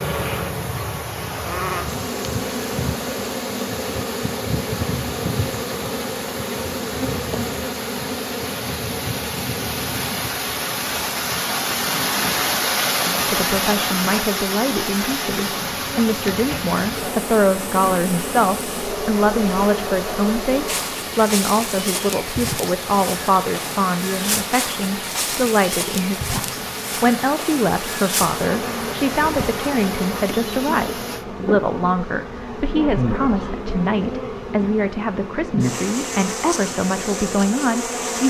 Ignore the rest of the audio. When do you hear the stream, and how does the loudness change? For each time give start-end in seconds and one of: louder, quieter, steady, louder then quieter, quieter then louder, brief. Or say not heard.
0.0-31.2 louder then quieter.